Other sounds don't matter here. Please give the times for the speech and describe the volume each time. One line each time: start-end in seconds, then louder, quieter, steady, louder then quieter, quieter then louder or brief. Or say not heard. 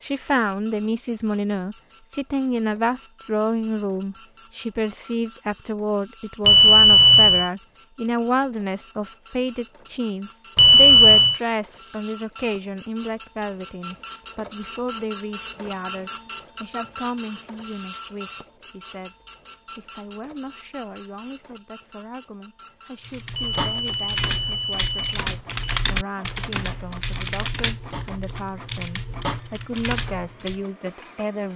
0.0-19.1 quieter
19.8-31.5 louder.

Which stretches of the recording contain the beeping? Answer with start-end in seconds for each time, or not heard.
6.5-7.5, 10.6-11.4, 23.4-25.6.